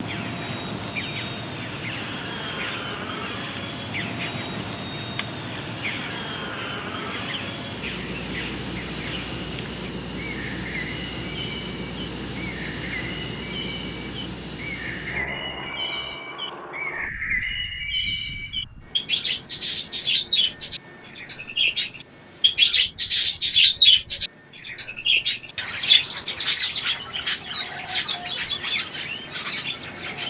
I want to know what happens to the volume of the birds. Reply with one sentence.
The volume of the birds goes up.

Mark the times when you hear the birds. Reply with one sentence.
You can hear the birds from 0.0 to 30.2 s.